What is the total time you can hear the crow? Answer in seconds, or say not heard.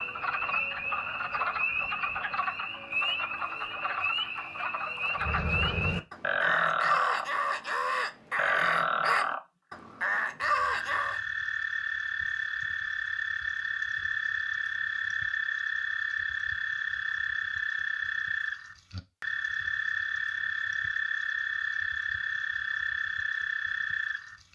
6 s.